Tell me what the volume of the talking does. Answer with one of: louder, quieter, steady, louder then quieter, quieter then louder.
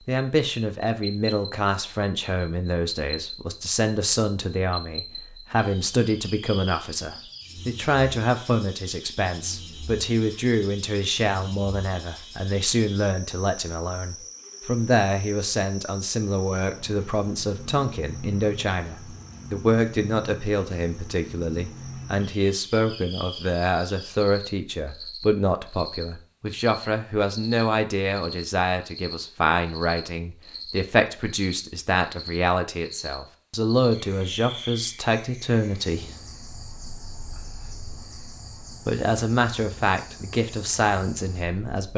steady.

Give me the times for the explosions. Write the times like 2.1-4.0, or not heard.
not heard.